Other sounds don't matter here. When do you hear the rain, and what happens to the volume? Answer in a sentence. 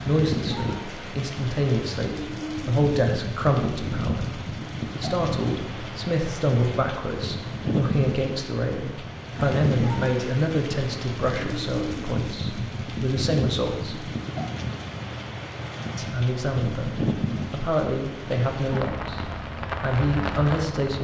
You can hear the rain from 0.0 to 20.9 s, at a steady volume.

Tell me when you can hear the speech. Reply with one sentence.
You can hear the speech from 0.1 to 14.1 s and from 15.9 to 20.9 s.